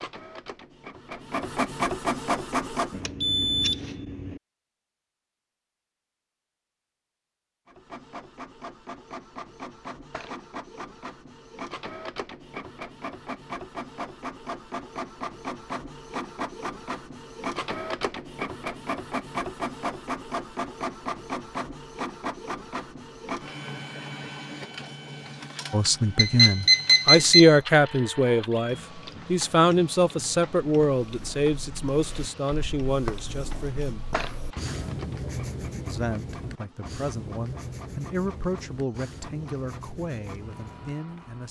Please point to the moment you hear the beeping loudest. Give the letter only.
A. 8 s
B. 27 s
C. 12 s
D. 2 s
B.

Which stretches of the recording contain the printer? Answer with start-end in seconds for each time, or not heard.
0.0-3.0, 7.7-41.4.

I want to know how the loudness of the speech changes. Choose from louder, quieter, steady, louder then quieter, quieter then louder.
quieter.